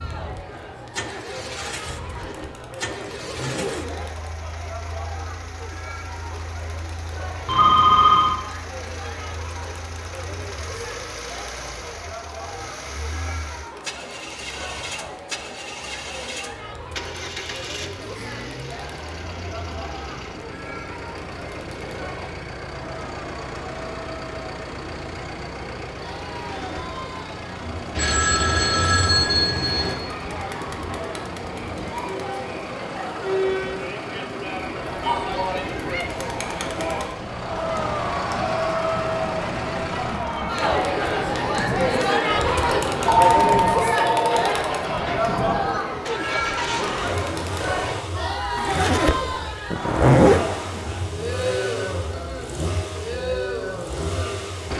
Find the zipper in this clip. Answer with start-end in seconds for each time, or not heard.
1.9-4.2, 26.4-26.9, 48.5-50.5.